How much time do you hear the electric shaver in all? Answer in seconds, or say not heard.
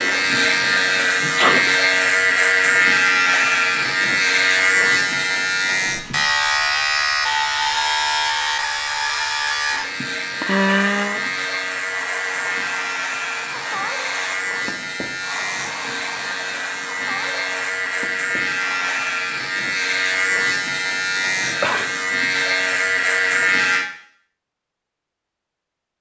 24 s.